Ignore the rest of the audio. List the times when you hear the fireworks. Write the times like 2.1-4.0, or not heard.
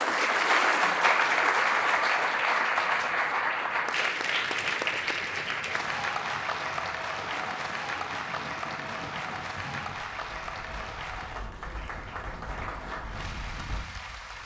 not heard.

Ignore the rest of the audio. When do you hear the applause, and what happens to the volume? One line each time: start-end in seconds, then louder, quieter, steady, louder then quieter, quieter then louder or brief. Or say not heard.
0.0-14.4 quieter.